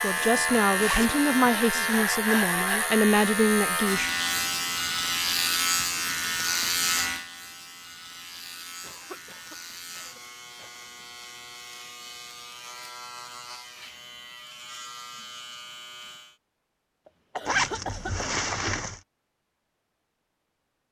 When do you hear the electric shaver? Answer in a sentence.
The electric shaver can be heard from 0.0 to 16.4 s.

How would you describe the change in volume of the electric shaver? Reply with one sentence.
The volume of the electric shaver goes down.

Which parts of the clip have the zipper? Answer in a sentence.
The zipper can be heard from 0.1 to 1.2 s and from 17.4 to 19.0 s.